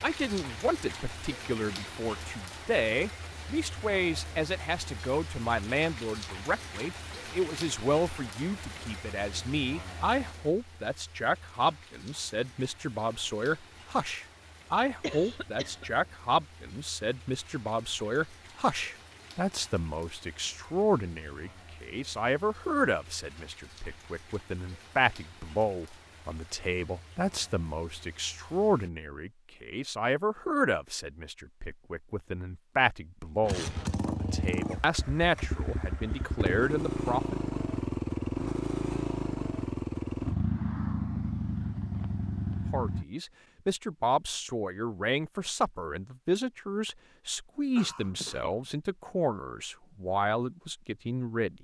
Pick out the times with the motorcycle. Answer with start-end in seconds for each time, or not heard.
33.4-43.0.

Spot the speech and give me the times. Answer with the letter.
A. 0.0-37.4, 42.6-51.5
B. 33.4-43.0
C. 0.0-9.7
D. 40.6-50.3
A.